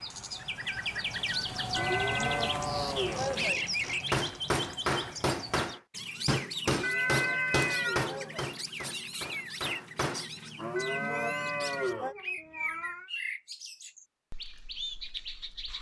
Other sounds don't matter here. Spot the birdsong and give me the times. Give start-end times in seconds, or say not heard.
0.0-15.7.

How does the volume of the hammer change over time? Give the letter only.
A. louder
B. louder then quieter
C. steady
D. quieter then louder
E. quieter
E.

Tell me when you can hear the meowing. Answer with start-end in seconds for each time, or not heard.
1.8-2.5, 6.8-8.3, 10.8-13.1.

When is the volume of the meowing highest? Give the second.
7 s.